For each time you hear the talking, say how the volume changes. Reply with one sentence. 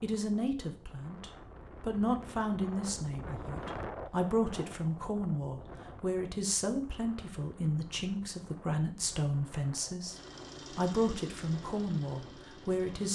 You can hear the talking from 0.0 to 13.0 s, at a steady volume.